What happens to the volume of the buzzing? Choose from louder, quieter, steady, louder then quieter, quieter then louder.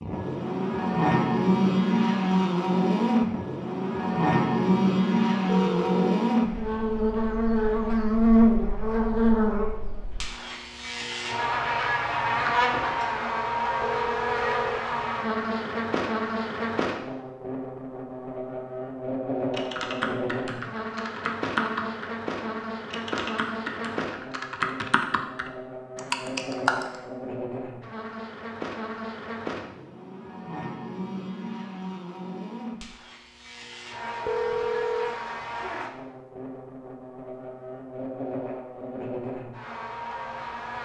quieter.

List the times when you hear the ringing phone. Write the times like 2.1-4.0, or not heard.
5.5-6.2, 13.8-14.8, 34.2-35.2.